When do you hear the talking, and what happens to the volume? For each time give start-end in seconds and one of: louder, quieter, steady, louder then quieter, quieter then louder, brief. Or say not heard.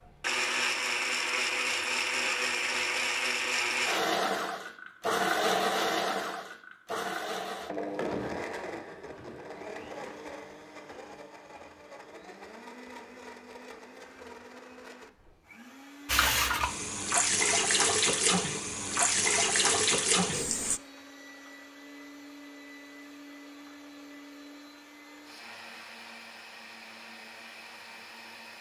not heard.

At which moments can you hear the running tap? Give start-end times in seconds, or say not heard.
16.1-20.8.